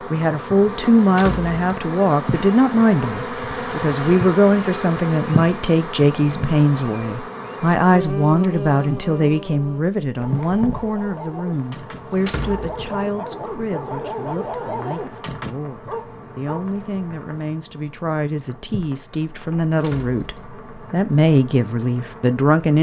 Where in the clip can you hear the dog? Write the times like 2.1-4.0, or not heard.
10.1-16.7.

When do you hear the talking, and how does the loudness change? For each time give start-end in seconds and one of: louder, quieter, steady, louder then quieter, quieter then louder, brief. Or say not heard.
0.1-22.7 quieter then louder.